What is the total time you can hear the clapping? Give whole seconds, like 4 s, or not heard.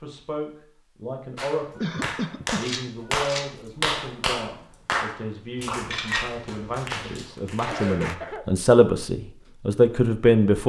7 s.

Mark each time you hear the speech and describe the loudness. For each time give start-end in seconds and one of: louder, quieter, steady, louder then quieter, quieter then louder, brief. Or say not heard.
0.0-1.9 brief
2.5-10.6 louder.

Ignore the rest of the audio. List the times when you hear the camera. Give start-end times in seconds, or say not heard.
2.6-3.5, 5.7-7.2.